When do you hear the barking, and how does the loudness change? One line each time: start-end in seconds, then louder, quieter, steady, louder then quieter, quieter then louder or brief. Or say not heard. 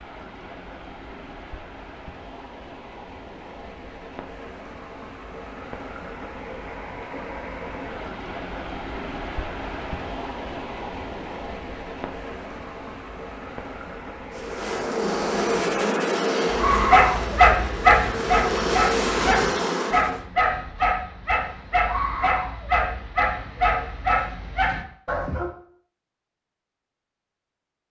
16.4-25.5 quieter.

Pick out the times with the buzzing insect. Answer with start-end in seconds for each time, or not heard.
14.3-20.2.